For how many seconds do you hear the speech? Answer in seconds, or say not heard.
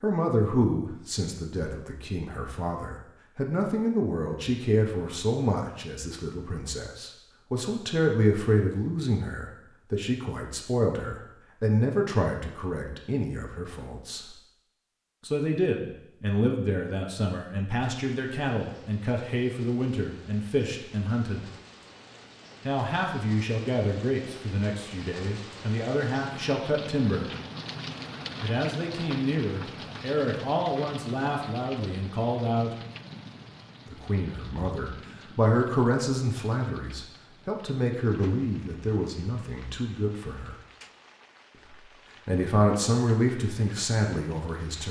39 s.